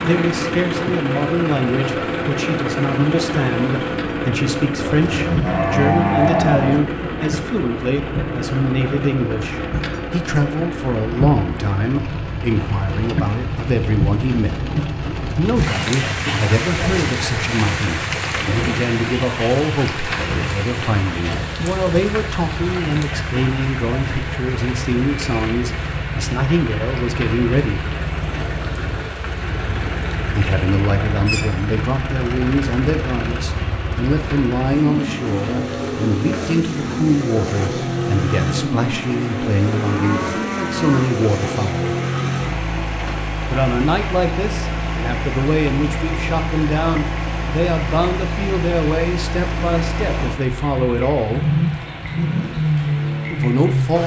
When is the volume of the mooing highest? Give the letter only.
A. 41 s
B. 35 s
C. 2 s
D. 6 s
D.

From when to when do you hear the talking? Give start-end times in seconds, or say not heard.
0.0-27.9, 30.4-42.0, 43.5-51.5, 53.3-54.0.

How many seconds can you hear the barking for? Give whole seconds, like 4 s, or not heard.
not heard.